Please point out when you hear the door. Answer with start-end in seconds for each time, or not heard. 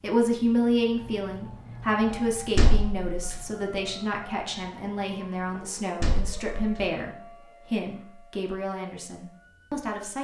2.1-3.4, 5.5-6.8.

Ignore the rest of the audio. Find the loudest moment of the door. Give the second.
3 s.